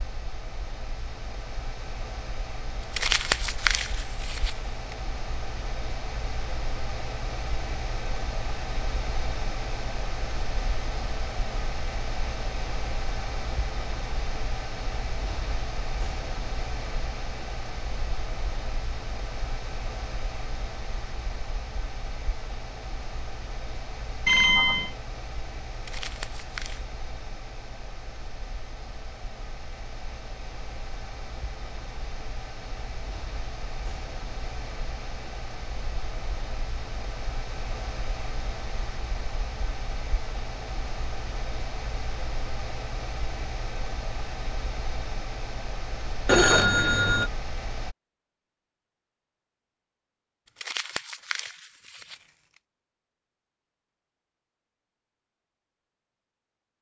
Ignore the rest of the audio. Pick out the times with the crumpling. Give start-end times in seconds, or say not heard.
2.9-5.0, 25.9-26.9, 50.5-52.2.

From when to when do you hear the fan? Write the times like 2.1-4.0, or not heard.
0.0-48.0.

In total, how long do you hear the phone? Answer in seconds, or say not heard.
2 s.